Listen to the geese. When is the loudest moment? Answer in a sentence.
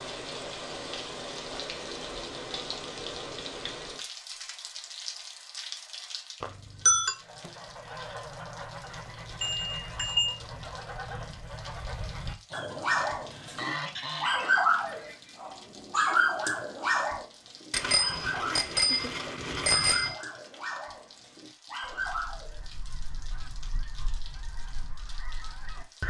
The loudest moment of the geese is at 14 seconds.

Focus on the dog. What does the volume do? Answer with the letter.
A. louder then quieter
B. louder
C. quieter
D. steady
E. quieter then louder
C.